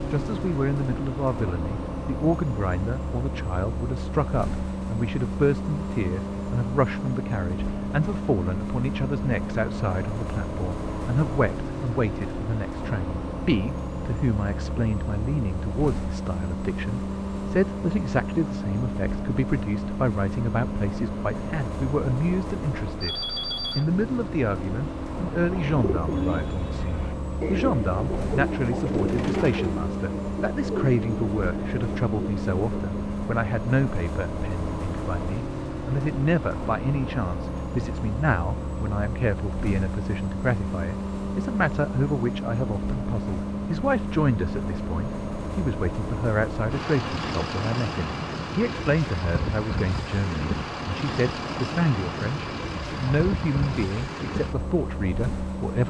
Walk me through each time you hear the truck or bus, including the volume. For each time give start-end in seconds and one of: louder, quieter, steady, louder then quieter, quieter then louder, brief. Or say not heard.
0.0-55.8 steady.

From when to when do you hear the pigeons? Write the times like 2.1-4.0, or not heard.
25.6-33.0.